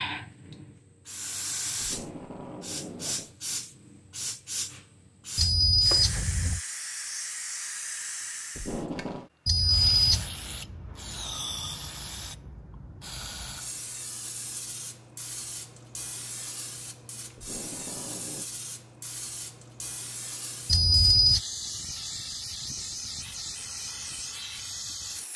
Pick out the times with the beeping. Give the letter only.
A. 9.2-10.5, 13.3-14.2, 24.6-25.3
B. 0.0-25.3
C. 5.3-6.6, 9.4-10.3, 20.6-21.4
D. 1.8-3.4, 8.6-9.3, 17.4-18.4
C.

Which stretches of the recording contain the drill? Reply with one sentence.
The drill can't be heard in this clip.